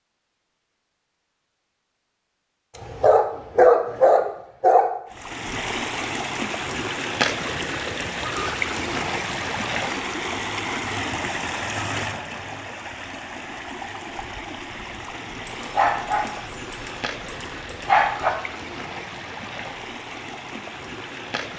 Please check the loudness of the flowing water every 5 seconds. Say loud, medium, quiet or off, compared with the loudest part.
off, loud, loud, medium, medium.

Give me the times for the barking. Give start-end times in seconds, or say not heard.
2.8-4.8, 15.4-18.3.